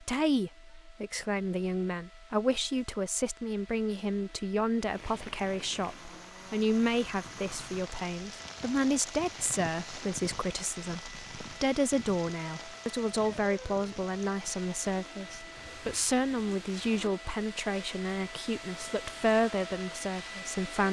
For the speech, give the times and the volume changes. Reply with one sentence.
You can hear the speech from 0.0 to 20.8 s, at a steady volume.